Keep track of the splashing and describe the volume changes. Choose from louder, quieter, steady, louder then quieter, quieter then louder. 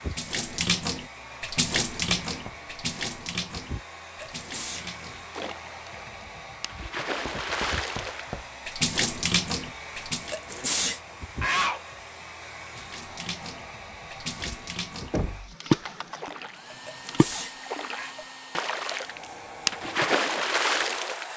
quieter then louder.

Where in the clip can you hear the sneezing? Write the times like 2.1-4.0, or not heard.
4.2-4.8, 10.3-11.8, 16.9-18.1.